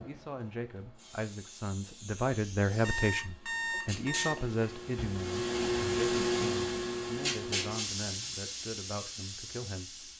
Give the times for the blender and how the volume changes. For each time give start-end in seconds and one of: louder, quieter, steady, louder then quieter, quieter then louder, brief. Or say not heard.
not heard.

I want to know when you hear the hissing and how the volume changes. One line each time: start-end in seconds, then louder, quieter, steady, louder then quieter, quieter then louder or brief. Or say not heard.
0.0-10.1 louder then quieter.